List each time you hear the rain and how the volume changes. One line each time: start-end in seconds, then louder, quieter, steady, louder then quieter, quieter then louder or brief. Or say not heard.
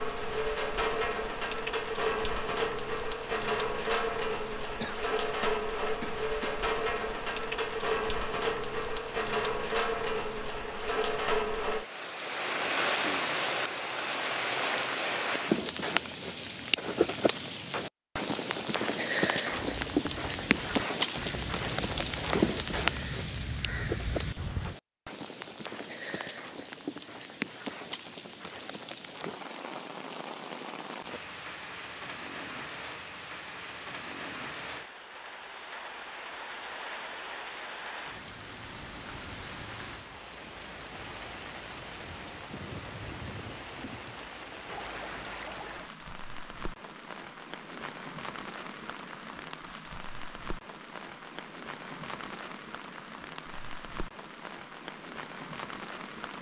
0.0-56.3 quieter.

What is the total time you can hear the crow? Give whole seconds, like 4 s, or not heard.
5 s.